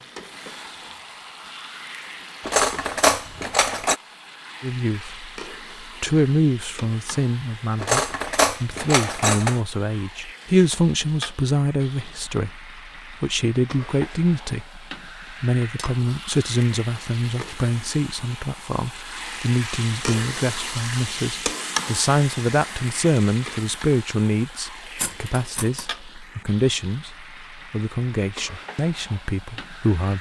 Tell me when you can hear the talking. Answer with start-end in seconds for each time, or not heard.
4.6-30.1.